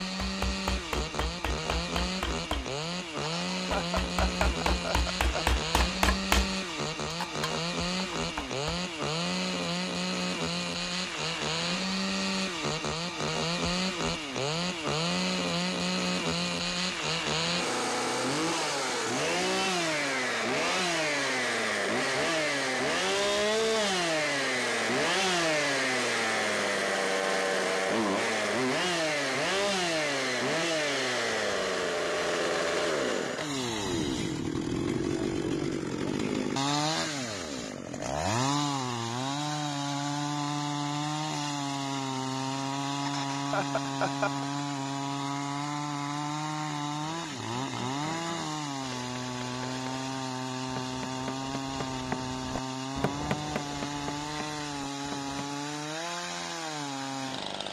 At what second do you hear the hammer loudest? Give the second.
6 s.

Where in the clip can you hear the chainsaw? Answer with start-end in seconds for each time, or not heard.
0.0-57.6.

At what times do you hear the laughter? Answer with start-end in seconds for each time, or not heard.
3.2-5.5, 43.0-44.5.